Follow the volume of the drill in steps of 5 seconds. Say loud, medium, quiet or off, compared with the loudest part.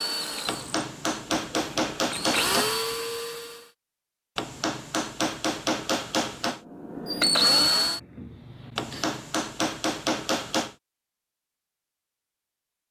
medium, loud, off.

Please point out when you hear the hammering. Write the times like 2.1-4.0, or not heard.
0.5-2.7, 4.3-6.6, 8.8-10.8.